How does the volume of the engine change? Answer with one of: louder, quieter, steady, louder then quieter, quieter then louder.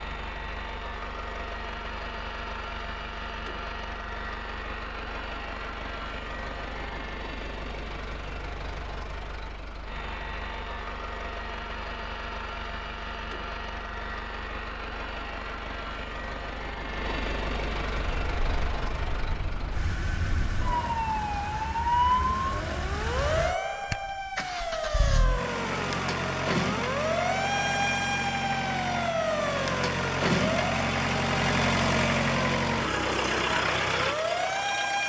louder.